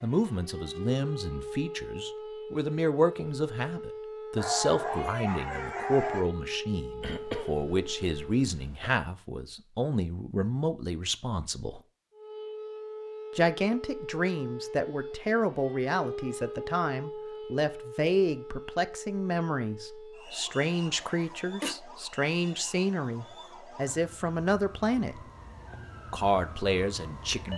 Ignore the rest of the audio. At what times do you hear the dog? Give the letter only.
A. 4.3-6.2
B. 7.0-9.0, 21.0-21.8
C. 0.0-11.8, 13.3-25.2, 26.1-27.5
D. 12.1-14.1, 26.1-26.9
A.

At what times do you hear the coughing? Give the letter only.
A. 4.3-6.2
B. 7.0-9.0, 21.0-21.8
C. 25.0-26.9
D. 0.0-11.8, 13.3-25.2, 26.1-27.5
B.